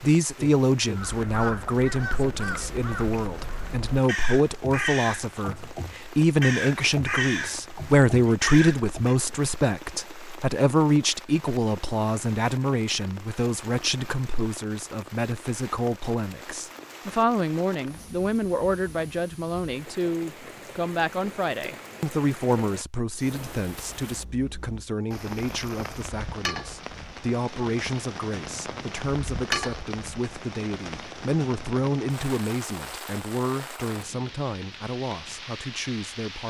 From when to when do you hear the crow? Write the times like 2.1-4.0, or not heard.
0.9-9.2.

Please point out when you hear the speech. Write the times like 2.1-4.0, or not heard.
0.0-36.4.